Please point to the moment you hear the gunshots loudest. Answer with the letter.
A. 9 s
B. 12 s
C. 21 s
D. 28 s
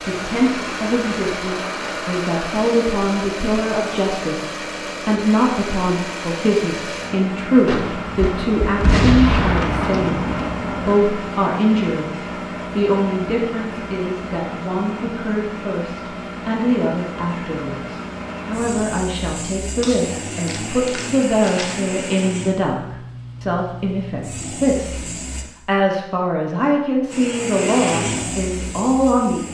A.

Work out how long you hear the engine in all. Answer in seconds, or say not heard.
28 s.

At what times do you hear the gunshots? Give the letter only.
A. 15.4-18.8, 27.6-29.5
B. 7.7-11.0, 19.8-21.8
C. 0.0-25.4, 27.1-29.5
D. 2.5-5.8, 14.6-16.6
B.